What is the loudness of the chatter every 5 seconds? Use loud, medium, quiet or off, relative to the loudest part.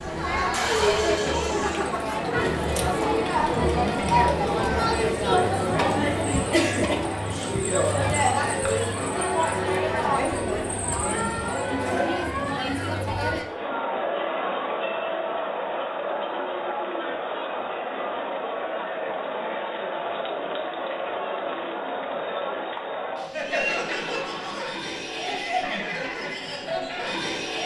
loud, loud, loud, medium, medium, medium.